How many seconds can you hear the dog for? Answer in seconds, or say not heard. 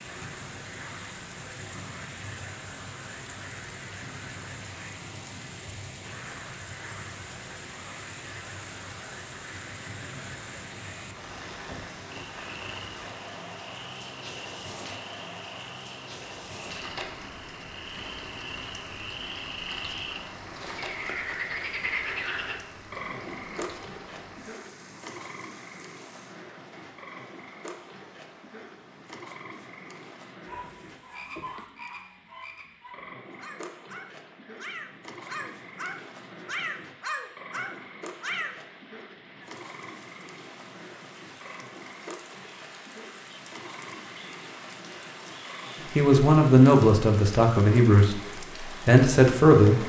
8 s.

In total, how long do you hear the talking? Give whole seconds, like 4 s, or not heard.
4 s.